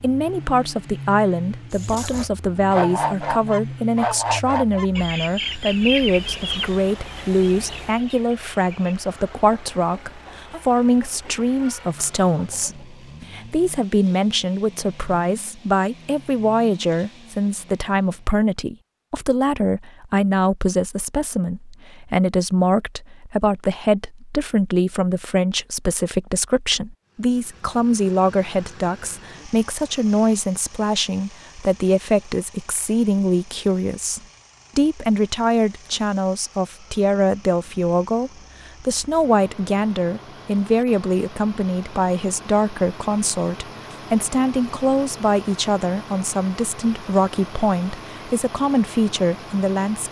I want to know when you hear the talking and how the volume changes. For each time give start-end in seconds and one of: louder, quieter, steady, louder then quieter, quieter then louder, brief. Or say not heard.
0.0-50.0 steady.